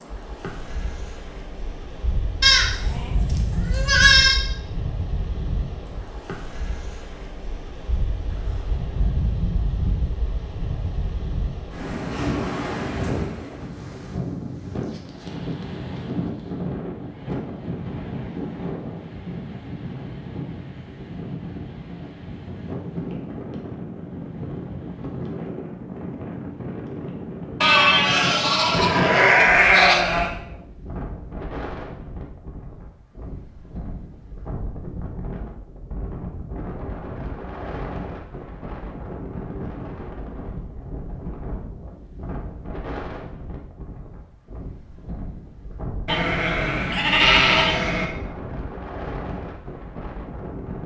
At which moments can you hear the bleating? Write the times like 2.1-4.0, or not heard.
2.4-4.4, 27.6-30.3, 46.0-48.0.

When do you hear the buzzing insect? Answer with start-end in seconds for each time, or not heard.
not heard.